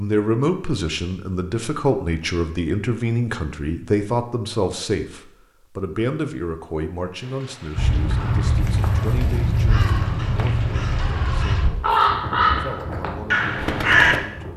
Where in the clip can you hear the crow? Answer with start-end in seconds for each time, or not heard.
7.8-14.2.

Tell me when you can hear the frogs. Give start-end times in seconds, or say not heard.
not heard.